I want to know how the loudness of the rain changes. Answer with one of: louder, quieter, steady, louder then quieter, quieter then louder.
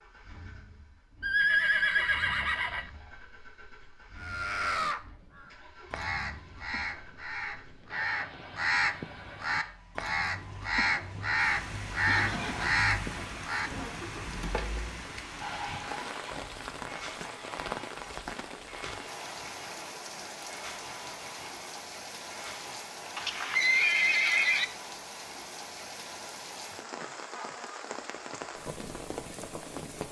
steady.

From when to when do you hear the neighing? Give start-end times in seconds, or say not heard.
1.2-2.9, 12.1-13.4, 23.1-24.6.